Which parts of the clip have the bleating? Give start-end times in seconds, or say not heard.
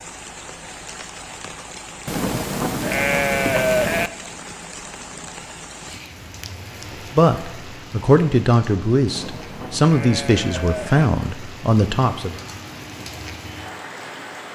2.0-4.1, 9.1-11.1.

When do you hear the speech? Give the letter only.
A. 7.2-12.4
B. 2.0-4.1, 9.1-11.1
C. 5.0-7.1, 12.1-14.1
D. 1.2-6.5
A.